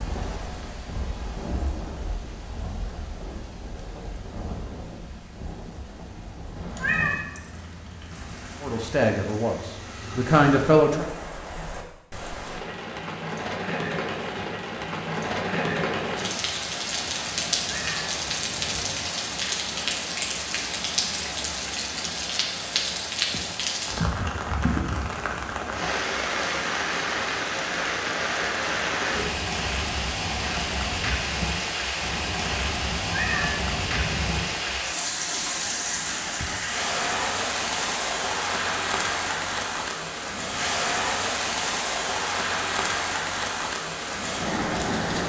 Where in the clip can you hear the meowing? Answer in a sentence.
You can hear the meowing from 6.5 to 7.2 s, from 17.6 to 18.9 s and from 32.9 to 34.4 s.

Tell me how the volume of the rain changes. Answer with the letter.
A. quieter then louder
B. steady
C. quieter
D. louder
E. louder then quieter
D.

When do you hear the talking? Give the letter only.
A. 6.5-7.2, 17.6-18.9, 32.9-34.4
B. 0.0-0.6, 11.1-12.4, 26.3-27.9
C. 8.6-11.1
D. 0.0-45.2
C.